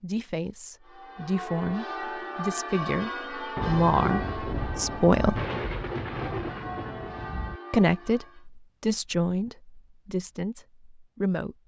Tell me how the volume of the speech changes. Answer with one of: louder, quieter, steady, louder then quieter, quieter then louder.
louder then quieter.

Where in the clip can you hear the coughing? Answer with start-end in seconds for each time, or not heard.
not heard.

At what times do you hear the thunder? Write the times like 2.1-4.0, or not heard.
3.5-7.6.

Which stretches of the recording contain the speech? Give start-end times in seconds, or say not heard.
0.0-5.4, 7.7-11.6.